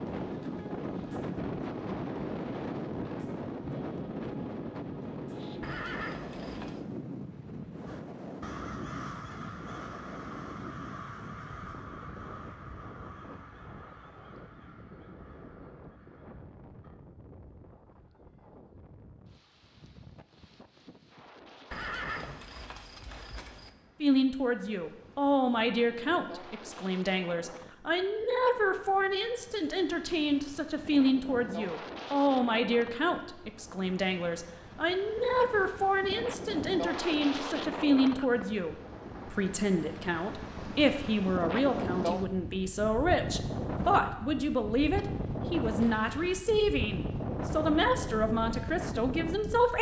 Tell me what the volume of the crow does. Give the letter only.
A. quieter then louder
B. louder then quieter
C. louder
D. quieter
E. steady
D.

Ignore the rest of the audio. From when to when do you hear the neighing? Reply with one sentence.
You can hear the neighing from 5.6 to 6.8 s, from 21.7 to 23.7 s and from 45.8 to 46.4 s.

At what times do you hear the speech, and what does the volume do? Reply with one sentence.
You can hear the speech from 24.0 to 49.7 s, at a steady volume.